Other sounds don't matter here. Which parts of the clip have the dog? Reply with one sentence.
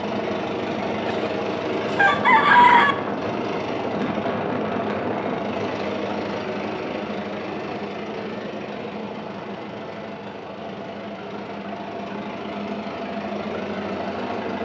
The dog can't be heard in this clip.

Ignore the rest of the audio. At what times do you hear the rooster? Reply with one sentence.
The rooster can be heard from 1.1 to 3.0 s.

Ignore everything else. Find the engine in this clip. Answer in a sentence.
The engine can be heard from 0.0 to 14.6 s.